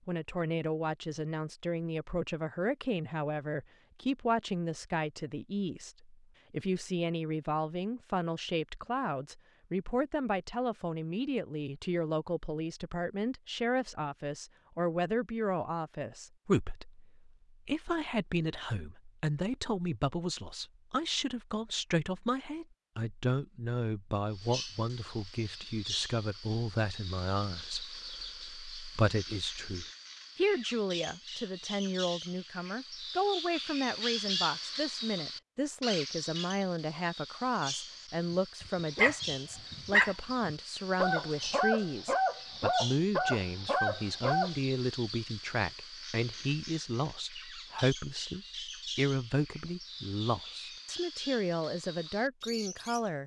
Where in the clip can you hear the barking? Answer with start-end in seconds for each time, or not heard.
38.3-44.5.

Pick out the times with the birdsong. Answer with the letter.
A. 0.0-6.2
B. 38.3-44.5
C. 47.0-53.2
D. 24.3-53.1
D.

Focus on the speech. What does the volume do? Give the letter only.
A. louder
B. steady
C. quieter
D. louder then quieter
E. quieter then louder
B.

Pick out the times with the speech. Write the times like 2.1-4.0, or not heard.
0.1-53.2.